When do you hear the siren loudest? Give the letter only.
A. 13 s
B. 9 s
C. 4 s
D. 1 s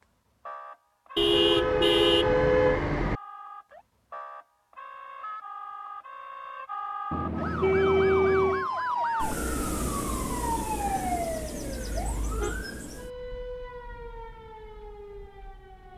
B.